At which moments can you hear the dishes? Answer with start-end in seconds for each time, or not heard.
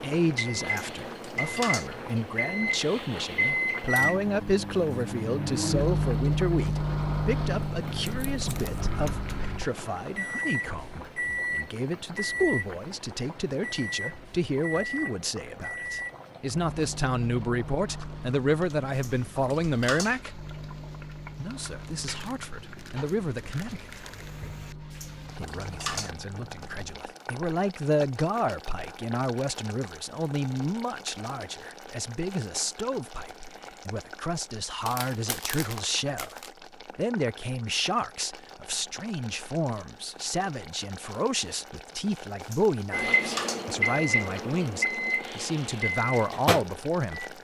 0.7-1.9, 18.9-20.1, 24.9-26.1, 42.4-43.6.